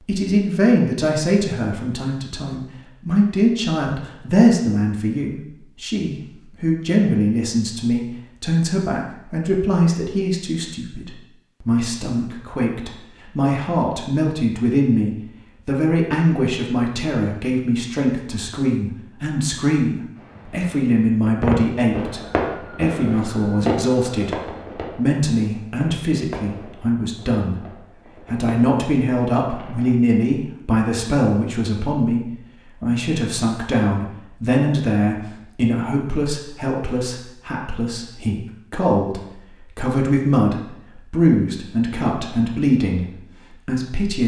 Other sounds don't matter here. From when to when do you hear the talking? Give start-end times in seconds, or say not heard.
0.1-24.4, 24.9-27.6, 28.2-44.2.